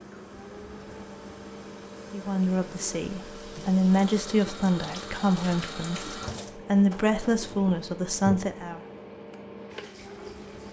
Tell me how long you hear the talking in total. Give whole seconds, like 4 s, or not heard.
7 s.